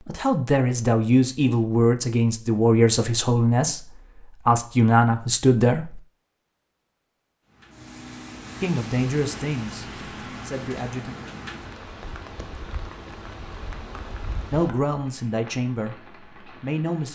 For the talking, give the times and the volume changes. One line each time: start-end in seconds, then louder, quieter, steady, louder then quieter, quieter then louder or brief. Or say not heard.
0.1-6.0 steady
8.6-11.2 brief
14.5-17.0 brief.